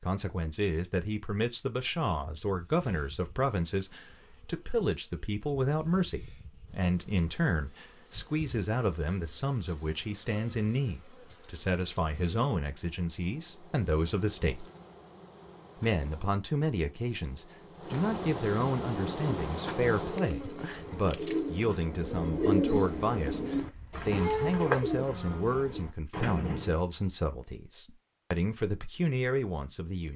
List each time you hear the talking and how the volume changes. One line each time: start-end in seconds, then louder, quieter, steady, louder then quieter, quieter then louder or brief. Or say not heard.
0.0-14.7 steady
15.8-30.1 steady.